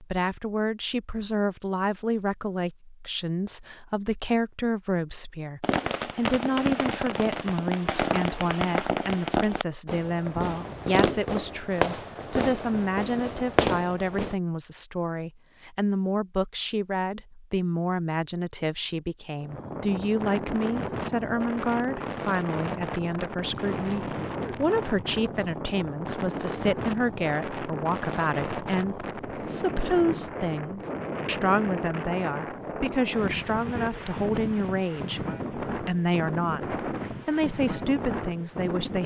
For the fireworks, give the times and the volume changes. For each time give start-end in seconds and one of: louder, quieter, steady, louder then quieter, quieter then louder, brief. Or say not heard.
5.6-14.3 steady.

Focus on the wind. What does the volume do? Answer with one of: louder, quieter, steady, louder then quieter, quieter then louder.
steady.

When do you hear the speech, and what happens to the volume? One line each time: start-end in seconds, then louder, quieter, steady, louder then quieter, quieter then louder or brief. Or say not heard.
0.0-39.0 steady.